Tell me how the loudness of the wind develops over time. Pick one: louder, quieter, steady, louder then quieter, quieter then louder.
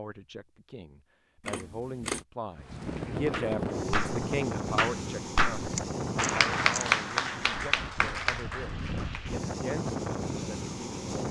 quieter then louder.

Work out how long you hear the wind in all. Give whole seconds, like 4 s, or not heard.
9 s.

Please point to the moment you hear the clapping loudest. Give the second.
7 s.